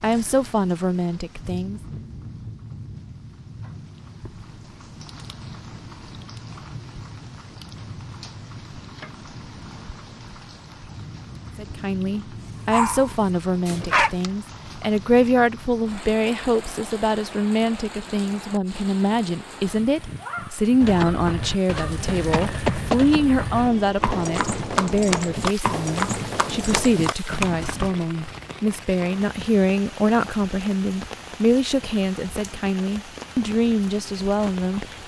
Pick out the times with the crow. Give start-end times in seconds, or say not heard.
not heard.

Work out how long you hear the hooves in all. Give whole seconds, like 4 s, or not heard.
7 s.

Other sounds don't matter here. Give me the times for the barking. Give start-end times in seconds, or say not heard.
12.7-14.1.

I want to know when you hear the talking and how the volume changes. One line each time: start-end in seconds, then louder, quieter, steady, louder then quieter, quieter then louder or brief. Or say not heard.
0.0-1.8 brief
11.6-34.9 steady.